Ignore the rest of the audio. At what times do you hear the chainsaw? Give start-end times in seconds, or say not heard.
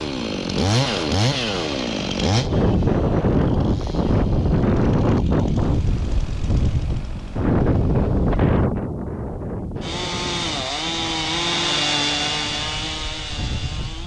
0.0-8.1, 9.8-14.0.